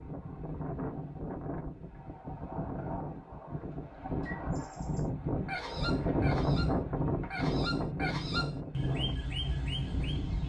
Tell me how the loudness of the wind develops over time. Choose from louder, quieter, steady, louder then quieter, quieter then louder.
louder then quieter.